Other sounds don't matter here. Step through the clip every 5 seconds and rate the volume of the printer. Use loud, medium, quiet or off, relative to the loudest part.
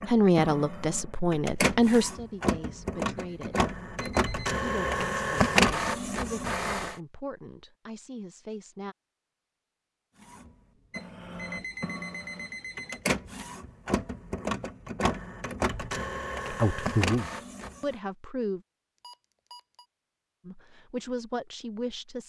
medium, loud, medium, medium, off.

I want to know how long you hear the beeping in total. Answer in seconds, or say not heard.
4 s.